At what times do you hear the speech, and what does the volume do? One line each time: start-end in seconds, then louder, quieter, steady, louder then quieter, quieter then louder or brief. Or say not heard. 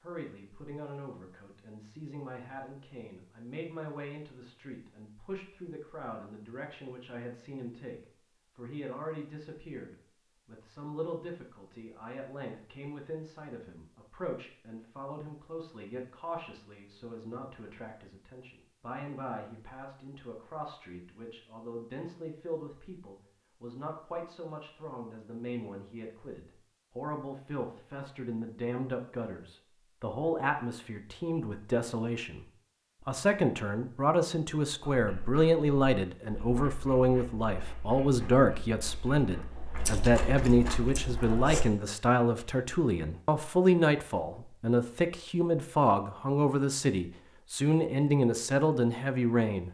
0.0-32.5 louder
33.0-49.6 steady.